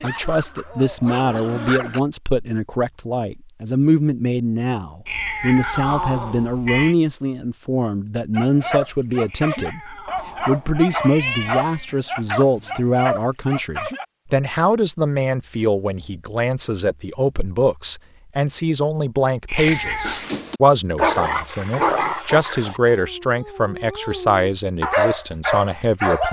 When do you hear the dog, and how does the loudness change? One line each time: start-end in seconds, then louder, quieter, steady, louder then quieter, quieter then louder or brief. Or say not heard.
0.0-2.0 brief
8.3-14.1 steady
19.6-26.2 quieter then louder.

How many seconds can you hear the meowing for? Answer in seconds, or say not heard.
5 s.